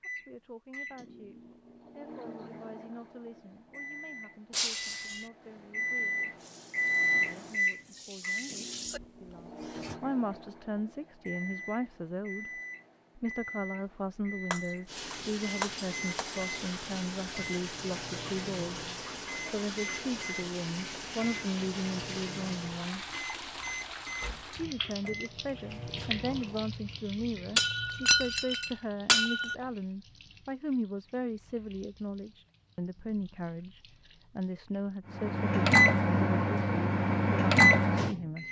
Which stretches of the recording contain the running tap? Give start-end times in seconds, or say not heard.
6.3-10.0, 14.8-35.0.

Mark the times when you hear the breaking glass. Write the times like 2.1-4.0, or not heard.
4.5-5.2, 14.5-16.3, 27.6-29.6.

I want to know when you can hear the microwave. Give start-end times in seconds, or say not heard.
0.0-26.7, 35.1-38.4.